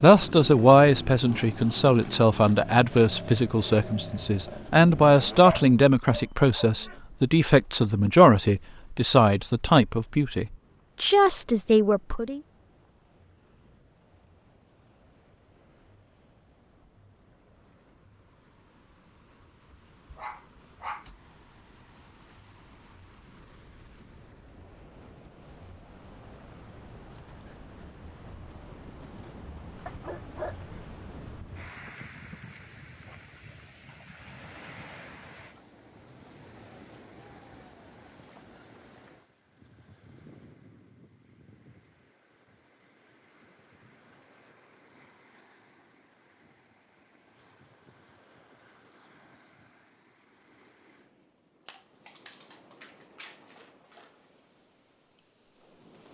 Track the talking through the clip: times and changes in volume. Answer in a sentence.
The talking can be heard from 0.0 to 12.4 s, at a steady volume.